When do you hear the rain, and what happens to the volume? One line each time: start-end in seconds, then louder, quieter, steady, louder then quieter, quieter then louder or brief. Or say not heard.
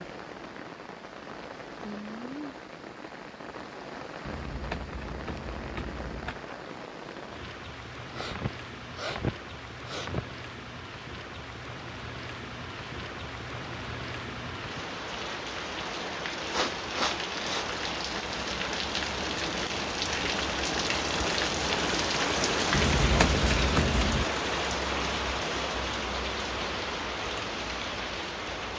0.0-28.7 louder.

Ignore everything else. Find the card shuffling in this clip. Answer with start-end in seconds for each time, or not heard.
4.2-6.5, 22.7-24.2.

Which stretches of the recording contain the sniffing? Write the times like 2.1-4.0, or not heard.
8.1-10.3, 16.4-17.8.